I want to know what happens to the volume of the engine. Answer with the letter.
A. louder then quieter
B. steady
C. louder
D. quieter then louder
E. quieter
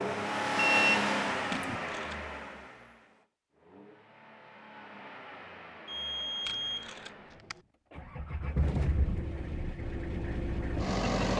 D.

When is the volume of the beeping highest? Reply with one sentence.
The loudest moment of the beeping is at 1 second.